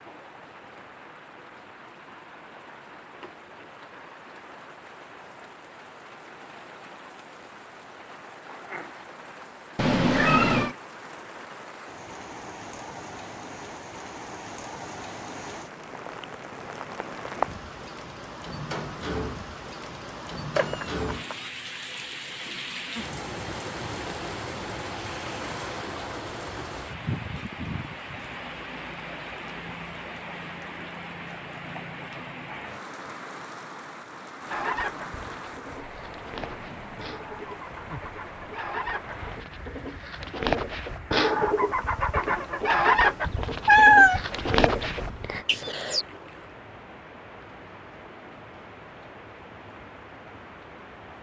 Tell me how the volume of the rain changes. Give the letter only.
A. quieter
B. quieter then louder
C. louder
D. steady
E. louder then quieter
E.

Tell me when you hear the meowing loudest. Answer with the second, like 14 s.
44 s.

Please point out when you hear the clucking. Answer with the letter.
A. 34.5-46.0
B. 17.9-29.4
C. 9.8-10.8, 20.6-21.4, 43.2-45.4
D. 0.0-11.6
A.